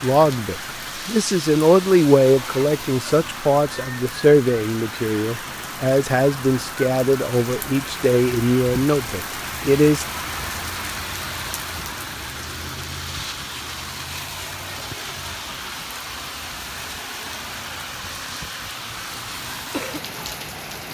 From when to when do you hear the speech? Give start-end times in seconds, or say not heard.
0.0-10.1.